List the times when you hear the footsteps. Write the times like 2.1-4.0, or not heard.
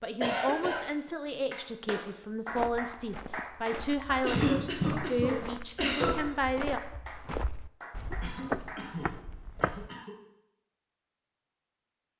2.5-9.9.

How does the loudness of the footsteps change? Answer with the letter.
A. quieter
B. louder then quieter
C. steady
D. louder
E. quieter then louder
D.